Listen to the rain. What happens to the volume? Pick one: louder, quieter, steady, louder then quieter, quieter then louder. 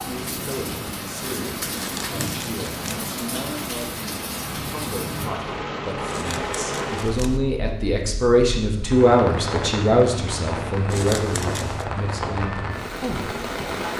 steady.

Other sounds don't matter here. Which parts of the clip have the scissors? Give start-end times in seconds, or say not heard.
1.8-3.0, 6.0-7.4, 10.9-11.8.